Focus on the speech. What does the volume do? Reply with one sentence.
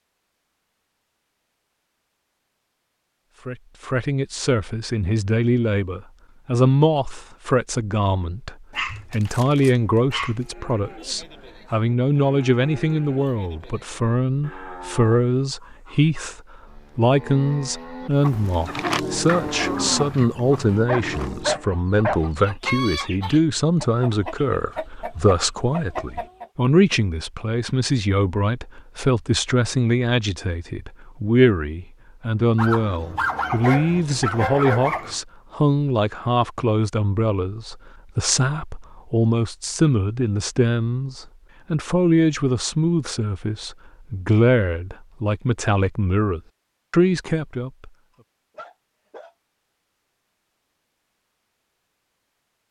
The volume of the speech stays about the same.